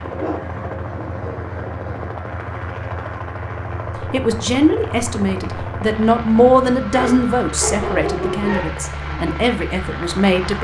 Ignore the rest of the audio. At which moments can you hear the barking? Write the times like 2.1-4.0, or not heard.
0.1-2.1, 6.9-8.7.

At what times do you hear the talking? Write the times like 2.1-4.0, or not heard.
4.1-10.5.